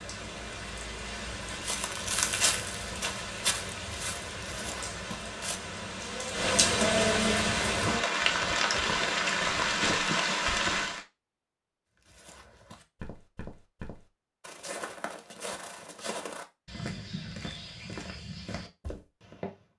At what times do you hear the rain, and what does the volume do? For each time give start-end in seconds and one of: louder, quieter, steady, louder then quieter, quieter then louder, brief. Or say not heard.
0.0-11.1 louder.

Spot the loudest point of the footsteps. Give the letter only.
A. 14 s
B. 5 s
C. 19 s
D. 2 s
D.